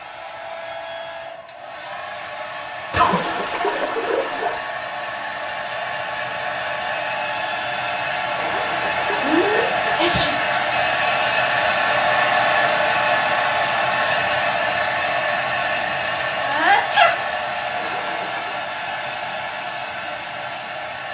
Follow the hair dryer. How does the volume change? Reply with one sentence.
The volume of the hair dryer goes up, then down.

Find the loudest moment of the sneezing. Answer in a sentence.
The volume of the sneezing peaks at 17 seconds.